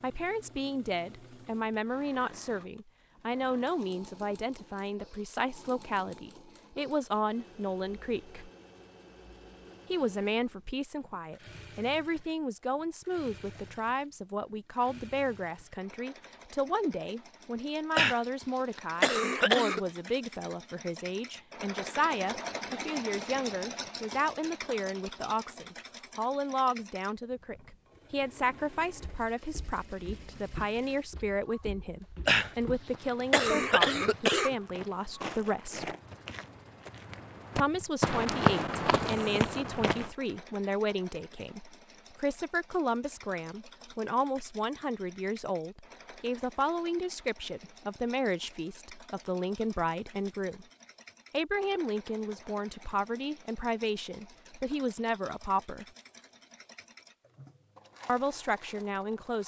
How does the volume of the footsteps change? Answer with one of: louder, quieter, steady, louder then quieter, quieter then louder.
louder.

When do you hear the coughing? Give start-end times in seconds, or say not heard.
17.9-19.8, 32.2-34.5.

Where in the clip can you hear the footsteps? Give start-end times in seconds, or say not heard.
28.9-40.1.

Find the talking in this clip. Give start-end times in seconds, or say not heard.
0.0-8.5, 9.9-36.0, 37.5-50.6, 51.3-55.9, 58.0-59.4.